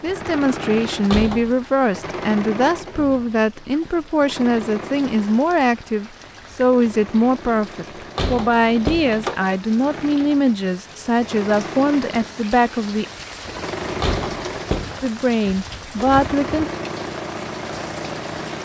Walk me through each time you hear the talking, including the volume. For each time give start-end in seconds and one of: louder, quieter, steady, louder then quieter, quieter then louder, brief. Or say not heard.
0.0-13.1 steady
15.0-16.7 brief.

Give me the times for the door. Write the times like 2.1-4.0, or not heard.
0.9-1.5, 8.0-9.4, 13.8-15.1.